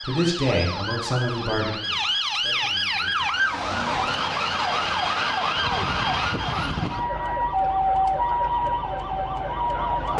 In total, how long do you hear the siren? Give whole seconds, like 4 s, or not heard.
10 s.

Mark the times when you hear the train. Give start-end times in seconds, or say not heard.
not heard.